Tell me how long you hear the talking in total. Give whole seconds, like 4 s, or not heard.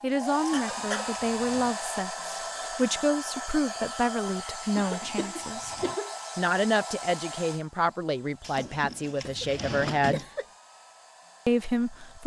10 s.